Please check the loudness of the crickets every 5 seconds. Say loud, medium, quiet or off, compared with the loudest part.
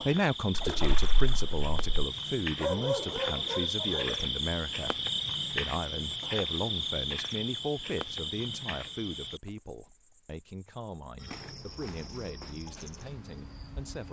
loud, loud, quiet.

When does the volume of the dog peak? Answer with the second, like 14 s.
3 s.